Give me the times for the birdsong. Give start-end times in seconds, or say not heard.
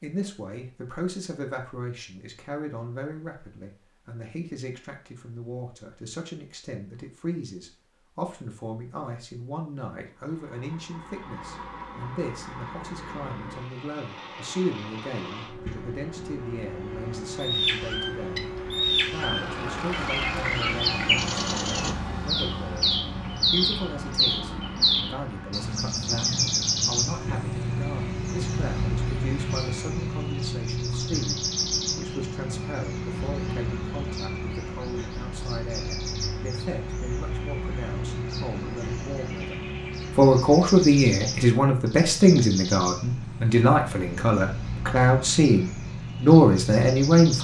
17.4-47.3.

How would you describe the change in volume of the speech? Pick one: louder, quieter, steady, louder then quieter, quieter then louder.
louder.